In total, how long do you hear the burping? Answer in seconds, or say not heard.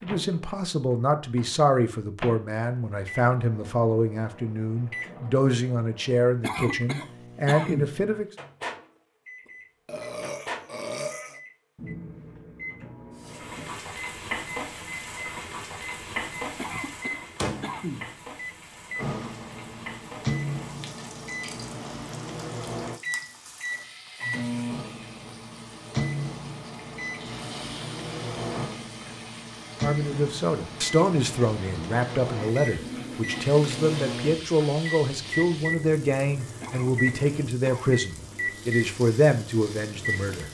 2 s.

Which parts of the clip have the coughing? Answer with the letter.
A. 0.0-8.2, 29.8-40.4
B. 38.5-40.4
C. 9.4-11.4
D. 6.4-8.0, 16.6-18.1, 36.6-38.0
D.